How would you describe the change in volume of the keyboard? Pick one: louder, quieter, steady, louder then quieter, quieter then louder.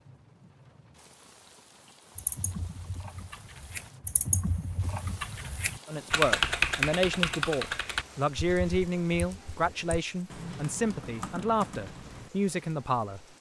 louder then quieter.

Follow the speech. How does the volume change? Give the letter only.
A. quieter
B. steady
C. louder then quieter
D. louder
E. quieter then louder
B.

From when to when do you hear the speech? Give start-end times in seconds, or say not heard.
5.8-13.2.